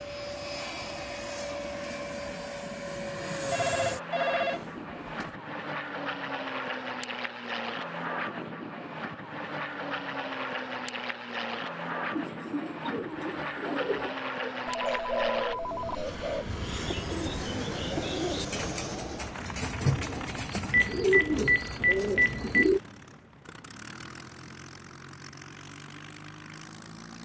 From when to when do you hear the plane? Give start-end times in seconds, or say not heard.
0.0-27.2.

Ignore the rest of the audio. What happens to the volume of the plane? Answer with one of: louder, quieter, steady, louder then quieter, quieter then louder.
quieter.